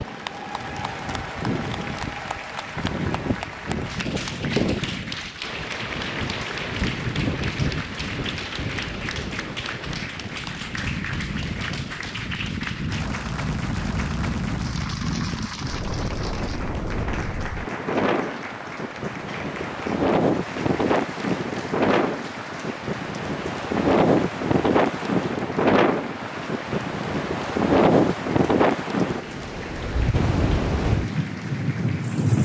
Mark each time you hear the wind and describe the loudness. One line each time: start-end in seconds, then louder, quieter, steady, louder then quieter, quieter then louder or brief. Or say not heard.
0.0-32.3 louder.